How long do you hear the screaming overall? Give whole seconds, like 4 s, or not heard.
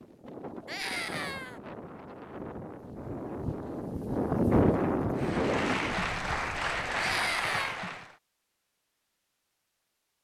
2 s.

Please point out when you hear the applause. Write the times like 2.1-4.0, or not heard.
5.2-8.2.